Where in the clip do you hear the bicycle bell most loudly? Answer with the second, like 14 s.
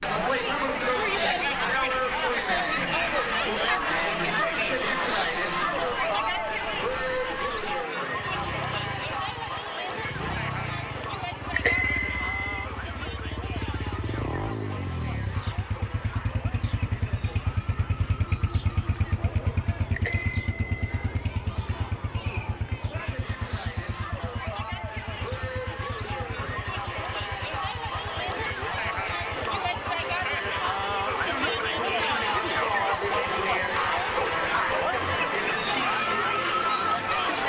12 s.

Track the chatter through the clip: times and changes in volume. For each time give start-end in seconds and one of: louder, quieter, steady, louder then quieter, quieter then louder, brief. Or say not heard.
0.0-37.4 quieter then louder.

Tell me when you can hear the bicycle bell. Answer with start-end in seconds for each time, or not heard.
11.5-12.7, 19.9-21.1.